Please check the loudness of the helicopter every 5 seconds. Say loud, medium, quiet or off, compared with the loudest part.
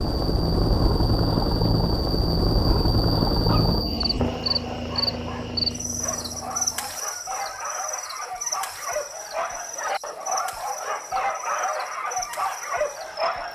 loud, quiet, off.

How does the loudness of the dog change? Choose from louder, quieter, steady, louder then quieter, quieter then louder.
louder.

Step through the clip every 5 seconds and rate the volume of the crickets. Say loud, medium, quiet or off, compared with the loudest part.
loud, loud, medium.